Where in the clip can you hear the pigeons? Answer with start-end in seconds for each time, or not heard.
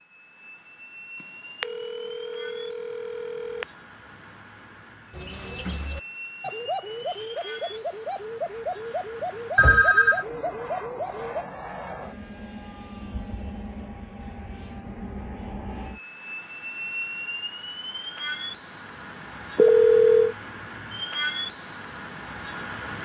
5.1-11.4.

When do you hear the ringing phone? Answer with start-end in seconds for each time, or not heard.
1.6-3.6, 9.6-10.2, 19.6-20.4.